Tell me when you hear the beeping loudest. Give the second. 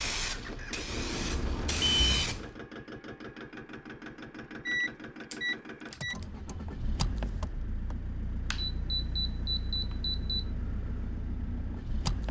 2 s.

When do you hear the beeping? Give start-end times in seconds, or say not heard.
0.8-2.2, 4.7-6.2, 8.5-10.4.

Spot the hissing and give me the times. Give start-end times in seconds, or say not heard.
0.0-2.6.